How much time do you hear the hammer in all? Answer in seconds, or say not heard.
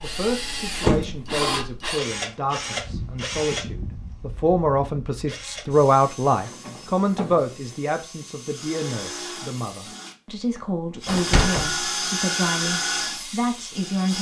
not heard.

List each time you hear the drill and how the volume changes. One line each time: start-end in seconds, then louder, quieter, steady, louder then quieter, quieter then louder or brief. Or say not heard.
0.0-14.1 quieter then louder.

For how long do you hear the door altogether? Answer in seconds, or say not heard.
3 s.